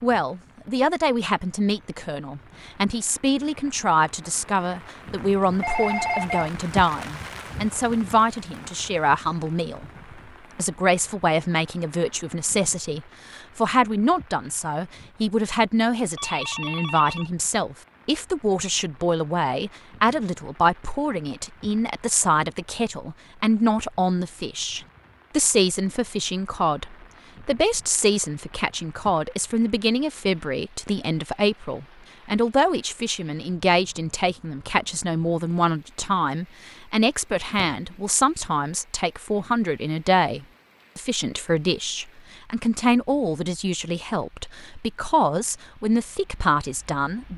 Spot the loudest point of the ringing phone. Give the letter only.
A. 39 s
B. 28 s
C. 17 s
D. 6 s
D.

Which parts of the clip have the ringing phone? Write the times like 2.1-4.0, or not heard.
5.4-6.5, 16.1-17.3, 37.5-38.0.